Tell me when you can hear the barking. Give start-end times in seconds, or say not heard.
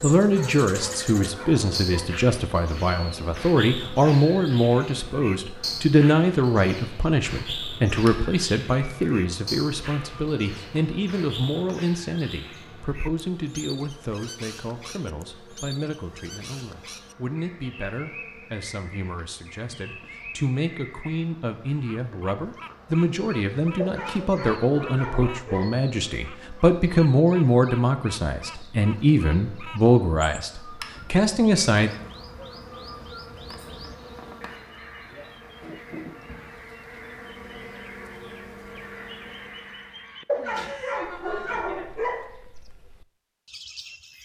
0.2-2.1, 23.8-25.8, 40.2-42.3.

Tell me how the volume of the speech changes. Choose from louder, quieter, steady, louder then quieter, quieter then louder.
quieter then louder.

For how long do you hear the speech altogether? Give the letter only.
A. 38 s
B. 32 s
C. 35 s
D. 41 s
B.